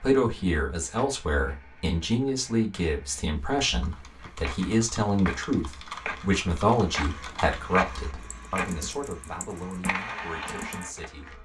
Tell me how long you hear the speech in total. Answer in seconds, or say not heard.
11 s.